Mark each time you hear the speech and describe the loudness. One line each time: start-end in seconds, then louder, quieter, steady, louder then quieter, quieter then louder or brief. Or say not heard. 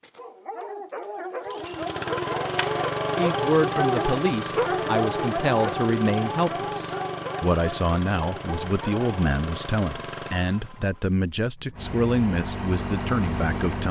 3.1-13.8 steady.